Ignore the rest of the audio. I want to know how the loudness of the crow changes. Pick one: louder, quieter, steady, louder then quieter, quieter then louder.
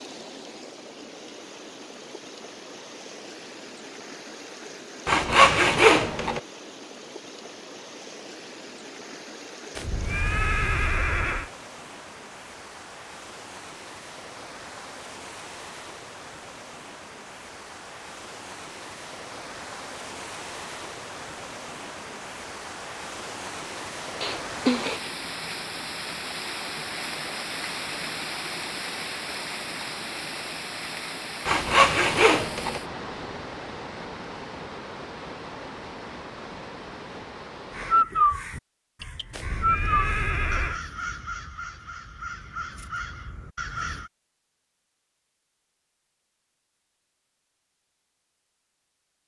quieter.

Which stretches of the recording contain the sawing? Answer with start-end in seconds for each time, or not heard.
5.0-6.4, 31.4-32.8.